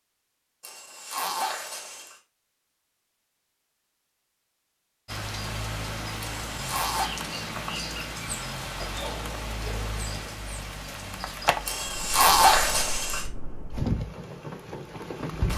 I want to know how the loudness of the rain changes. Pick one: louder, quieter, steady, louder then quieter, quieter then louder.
steady.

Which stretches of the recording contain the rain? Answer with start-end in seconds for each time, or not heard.
5.0-15.5.